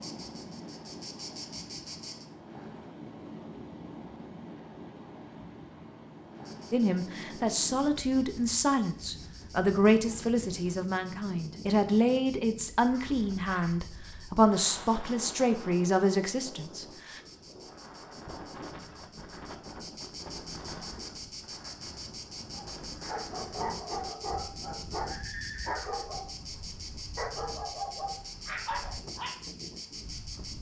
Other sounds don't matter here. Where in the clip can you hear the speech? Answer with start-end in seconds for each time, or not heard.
6.7-17.2.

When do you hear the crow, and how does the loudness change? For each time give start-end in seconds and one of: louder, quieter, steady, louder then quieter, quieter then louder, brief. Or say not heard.
not heard.